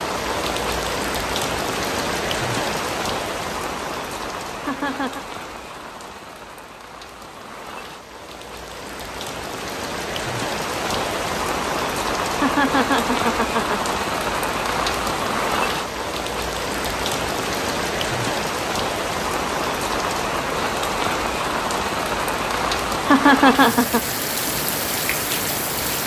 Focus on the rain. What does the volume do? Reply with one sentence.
The loudness of the rain goes down, then up.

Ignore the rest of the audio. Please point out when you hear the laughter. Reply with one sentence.
The laughter can be heard from 4.6 to 5.2 s, from 12.3 to 13.9 s and from 23.1 to 24.1 s.